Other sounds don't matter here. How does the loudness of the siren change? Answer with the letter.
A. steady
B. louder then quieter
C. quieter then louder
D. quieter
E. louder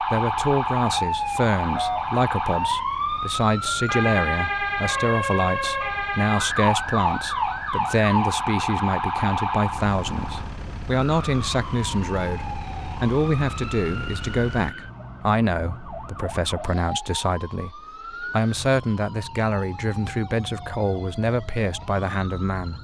D.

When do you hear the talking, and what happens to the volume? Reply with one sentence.
You can hear the talking from 0.0 to 22.7 s, at a steady volume.